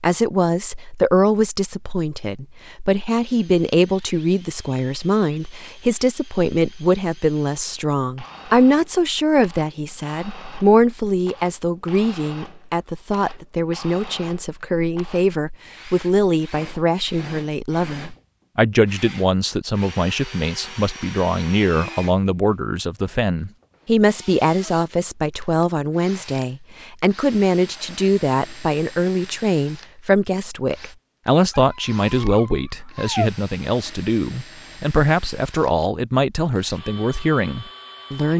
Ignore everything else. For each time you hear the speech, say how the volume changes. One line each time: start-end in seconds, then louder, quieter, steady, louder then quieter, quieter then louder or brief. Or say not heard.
0.0-38.3 steady.